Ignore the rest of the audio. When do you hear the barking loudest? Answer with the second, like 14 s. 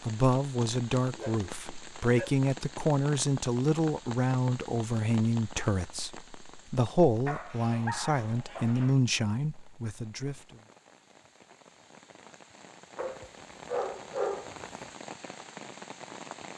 14 s.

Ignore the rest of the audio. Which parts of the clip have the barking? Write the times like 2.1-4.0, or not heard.
1.1-2.5, 7.2-8.9, 12.9-14.9.